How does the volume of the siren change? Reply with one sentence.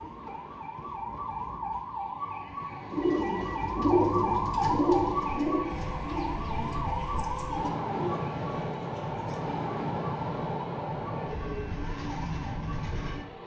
The loudness of the siren goes up, then down.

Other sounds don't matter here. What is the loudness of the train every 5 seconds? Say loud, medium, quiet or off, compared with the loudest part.
quiet, loud, loud.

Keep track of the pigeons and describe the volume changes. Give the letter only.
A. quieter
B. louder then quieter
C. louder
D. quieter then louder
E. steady
A.